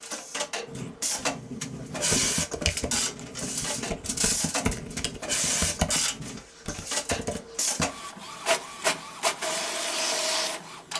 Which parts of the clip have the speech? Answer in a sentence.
You can't hear the speech here.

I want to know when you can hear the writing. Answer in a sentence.
The writing can be heard from 0.7 to 6.5 s.